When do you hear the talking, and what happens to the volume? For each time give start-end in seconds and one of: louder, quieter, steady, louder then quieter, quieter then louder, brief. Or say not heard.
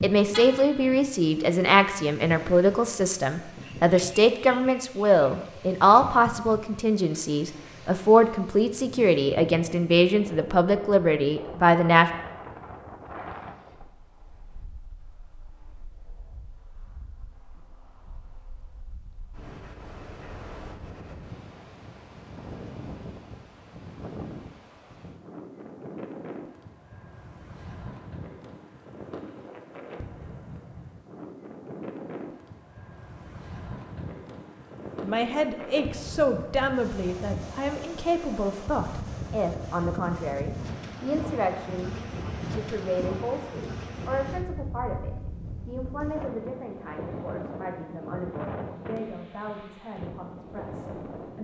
0.0-12.1 steady
35.0-51.4 quieter.